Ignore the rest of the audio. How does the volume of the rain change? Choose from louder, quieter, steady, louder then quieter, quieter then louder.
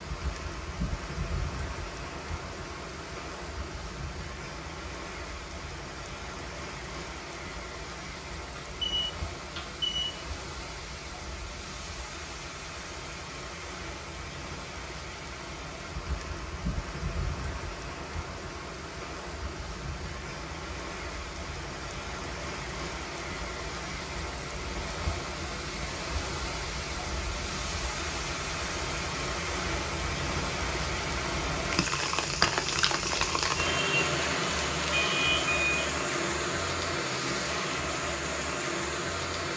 louder.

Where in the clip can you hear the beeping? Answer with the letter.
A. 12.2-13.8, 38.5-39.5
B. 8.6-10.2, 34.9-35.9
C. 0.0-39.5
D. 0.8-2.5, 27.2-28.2
B.